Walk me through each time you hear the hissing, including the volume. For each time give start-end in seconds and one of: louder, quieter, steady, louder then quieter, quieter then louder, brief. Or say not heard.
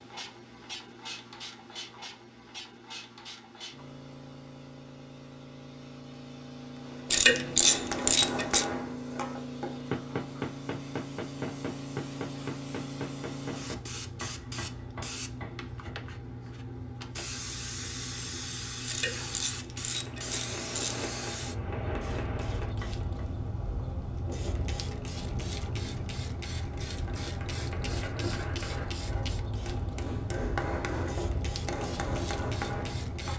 0.0-33.3 louder.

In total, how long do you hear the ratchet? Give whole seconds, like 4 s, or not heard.
4 s.